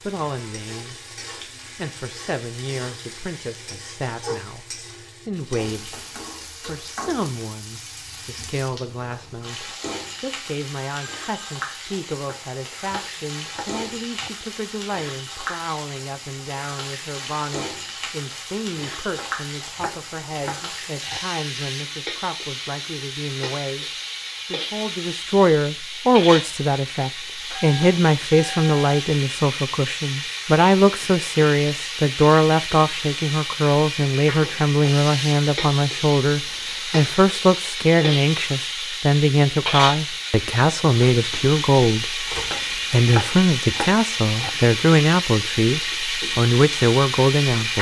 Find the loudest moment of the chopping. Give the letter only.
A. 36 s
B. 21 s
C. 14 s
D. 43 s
D.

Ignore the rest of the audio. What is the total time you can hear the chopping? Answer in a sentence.
The chopping can be heard for 6 seconds in total.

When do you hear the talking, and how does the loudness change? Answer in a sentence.
You can hear the talking briefly from 0.0 to 0.9 s; from 1.8 to 23.9 s, at a steady volume; and from 24.5 to 47.7 s, at a steady volume.